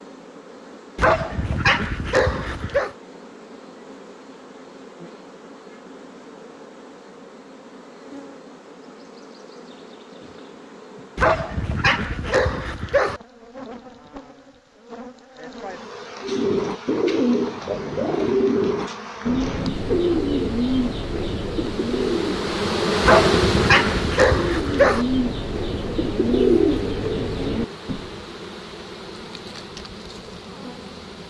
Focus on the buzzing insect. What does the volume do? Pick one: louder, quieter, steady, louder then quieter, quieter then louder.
louder then quieter.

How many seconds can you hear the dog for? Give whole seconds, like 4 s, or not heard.
6 s.